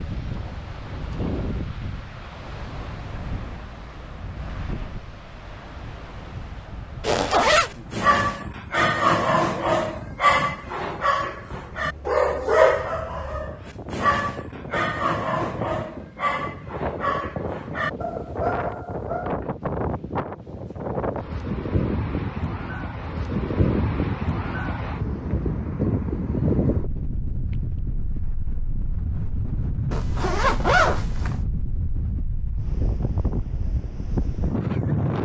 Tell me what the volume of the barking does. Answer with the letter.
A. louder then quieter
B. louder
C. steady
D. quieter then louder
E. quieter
E.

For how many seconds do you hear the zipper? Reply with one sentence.
The zipper can be heard for 2 seconds in total.